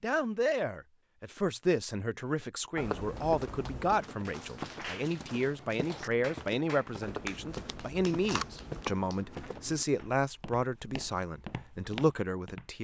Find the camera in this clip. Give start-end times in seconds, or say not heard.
2.8-4.0, 7.0-8.8.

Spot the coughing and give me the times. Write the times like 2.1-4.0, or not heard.
not heard.